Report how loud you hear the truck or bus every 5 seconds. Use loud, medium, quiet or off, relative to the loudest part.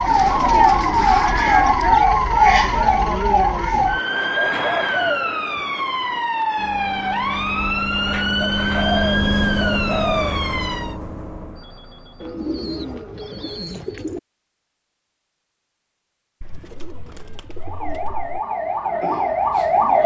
off, loud, medium, off.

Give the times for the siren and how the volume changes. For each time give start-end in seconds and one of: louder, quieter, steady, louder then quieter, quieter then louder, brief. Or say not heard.
0.0-11.0 quieter
17.6-20.0 brief.